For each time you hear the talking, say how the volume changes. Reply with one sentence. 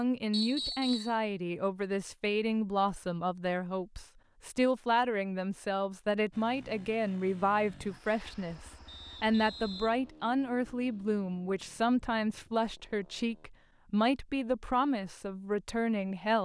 You can hear the talking from 0.0 to 16.4 s, at a steady volume.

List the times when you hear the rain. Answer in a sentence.
The rain can't be heard in this clip.